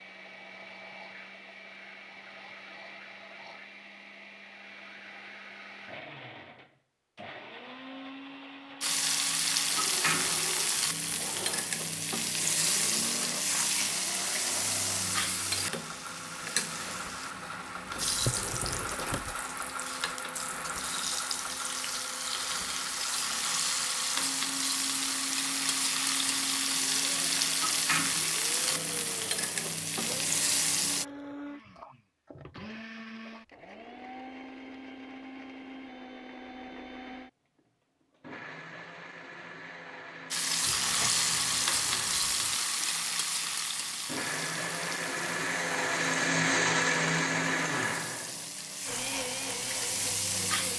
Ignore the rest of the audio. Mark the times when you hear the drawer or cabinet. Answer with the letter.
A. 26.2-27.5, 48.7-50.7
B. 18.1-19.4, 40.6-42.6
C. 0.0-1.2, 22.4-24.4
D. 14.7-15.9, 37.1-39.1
B.